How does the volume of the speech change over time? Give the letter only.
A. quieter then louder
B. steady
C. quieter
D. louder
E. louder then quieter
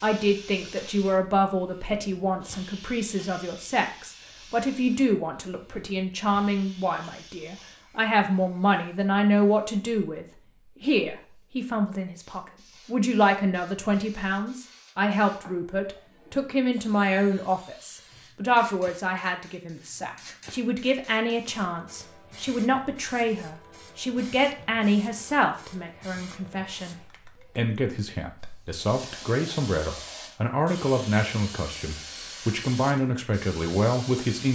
B.